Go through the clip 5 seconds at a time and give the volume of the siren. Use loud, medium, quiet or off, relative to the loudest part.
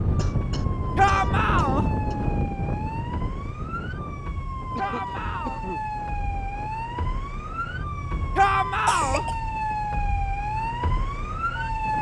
medium, loud, loud.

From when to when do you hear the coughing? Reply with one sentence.
You can hear the coughing from 0.1 to 2.1 s, from 4.8 to 5.8 s and from 8.8 to 9.3 s.